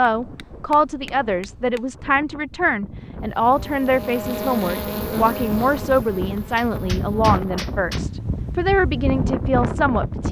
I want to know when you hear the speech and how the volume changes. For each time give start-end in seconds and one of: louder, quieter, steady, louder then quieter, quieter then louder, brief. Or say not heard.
0.0-10.2 steady.